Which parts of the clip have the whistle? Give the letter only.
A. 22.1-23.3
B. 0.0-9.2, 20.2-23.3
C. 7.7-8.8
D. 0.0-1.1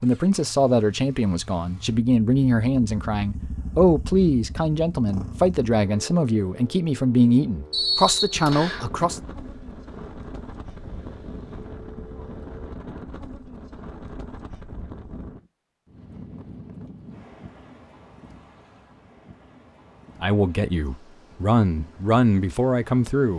C.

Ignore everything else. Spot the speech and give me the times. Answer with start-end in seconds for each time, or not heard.
0.0-9.2, 20.2-23.3.